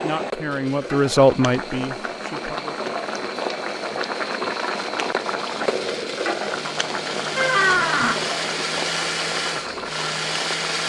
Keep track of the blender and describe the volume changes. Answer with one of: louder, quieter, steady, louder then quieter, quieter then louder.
louder.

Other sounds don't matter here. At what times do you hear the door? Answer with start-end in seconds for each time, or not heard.
7.3-8.2.